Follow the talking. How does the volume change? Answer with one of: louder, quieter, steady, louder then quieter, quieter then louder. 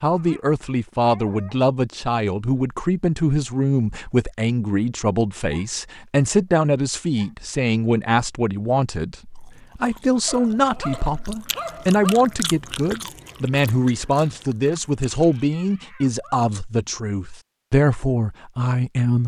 steady.